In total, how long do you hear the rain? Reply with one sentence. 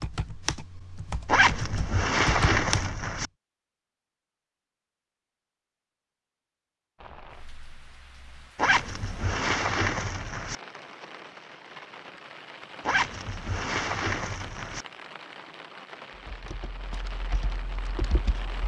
The rain can be heard for 12 seconds in total.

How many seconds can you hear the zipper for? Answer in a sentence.
You can hear the zipper for 6 seconds altogether.